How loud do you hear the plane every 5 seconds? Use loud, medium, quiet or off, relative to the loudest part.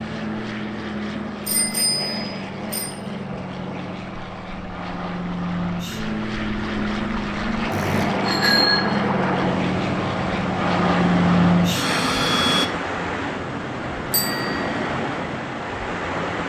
medium, medium, loud, off.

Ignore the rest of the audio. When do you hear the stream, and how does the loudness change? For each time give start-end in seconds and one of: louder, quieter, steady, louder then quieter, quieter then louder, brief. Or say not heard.
0.0-16.4 louder.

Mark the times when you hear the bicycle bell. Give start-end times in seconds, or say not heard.
1.4-2.9, 7.7-8.8, 14.1-14.7.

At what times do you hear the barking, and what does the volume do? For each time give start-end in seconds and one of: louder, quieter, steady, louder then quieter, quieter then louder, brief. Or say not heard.
not heard.